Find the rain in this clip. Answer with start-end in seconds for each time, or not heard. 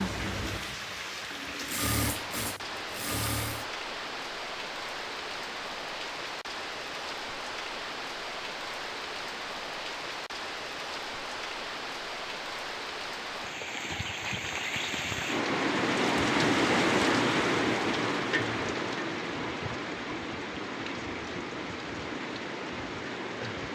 0.0-23.7.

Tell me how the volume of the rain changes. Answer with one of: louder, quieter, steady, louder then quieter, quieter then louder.
louder then quieter.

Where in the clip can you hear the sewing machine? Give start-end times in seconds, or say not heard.
0.0-3.6.